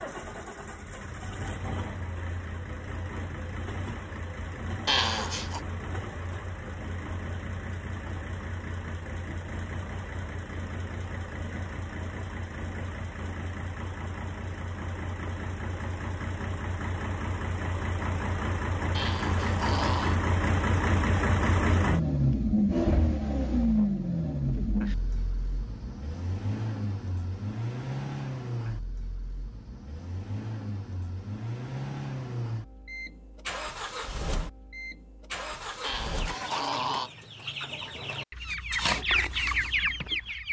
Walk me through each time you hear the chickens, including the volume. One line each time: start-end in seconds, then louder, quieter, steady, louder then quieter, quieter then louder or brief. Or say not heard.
36.0-40.4 louder.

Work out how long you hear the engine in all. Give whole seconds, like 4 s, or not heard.
37 s.